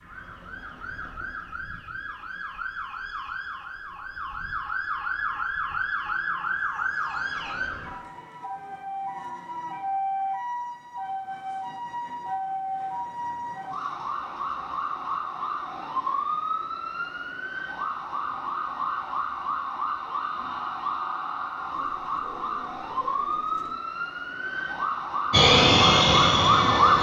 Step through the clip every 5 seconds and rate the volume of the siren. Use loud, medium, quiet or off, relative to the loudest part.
quiet, medium, medium, medium, medium, loud.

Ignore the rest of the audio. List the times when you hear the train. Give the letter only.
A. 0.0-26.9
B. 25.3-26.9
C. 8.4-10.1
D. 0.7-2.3
B.